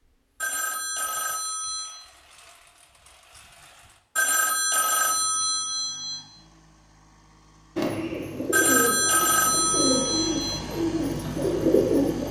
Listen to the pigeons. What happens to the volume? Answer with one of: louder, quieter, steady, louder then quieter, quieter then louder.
quieter then louder.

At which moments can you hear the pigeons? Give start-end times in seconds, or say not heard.
7.8-12.2.